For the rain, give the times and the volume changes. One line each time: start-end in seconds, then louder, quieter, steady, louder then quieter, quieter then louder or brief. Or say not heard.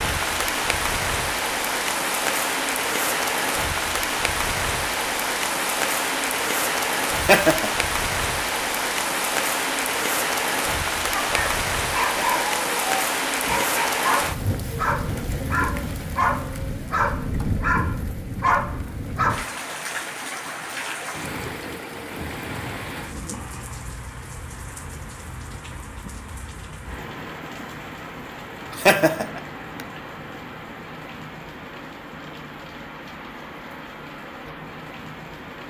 0.0-35.6 quieter.